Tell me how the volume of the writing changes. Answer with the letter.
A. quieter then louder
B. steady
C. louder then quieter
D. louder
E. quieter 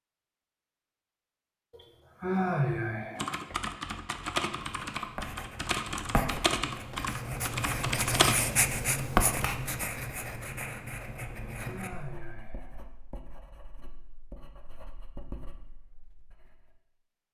C.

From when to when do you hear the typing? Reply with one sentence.
The typing can be heard from 3.1 to 8.4 s.